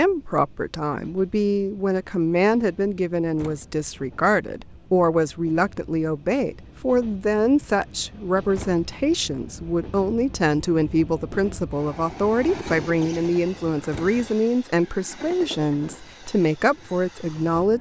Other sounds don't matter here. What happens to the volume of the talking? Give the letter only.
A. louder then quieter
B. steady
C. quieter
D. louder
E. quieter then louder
B.